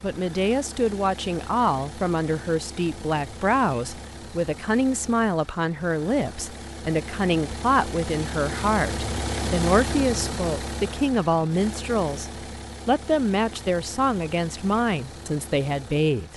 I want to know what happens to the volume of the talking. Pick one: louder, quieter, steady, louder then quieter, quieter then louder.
steady.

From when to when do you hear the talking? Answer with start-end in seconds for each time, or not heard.
0.0-16.3.